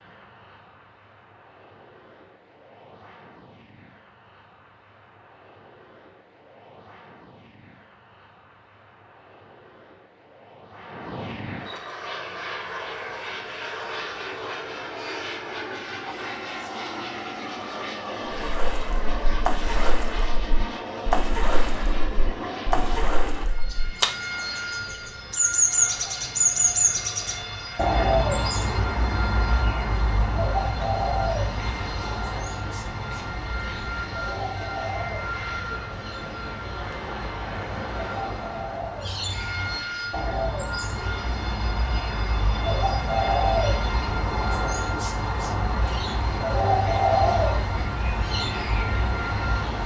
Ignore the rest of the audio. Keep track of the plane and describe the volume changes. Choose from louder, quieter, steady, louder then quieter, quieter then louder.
louder.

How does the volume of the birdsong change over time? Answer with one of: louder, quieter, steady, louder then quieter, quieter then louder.
quieter then louder.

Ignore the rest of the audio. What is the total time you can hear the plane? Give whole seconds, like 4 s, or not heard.
50 s.